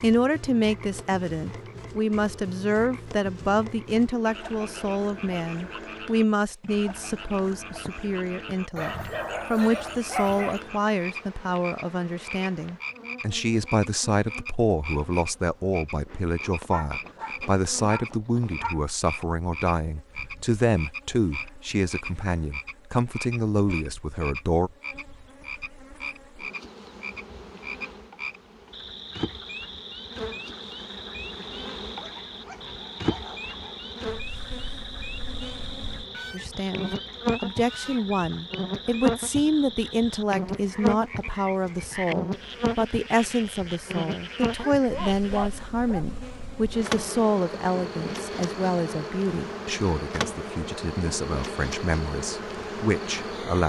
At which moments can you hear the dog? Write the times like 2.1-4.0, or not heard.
8.8-10.6, 16.6-18.8, 31.9-33.9, 44.8-46.0.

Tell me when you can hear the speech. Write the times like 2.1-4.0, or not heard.
0.0-24.7, 36.3-53.6.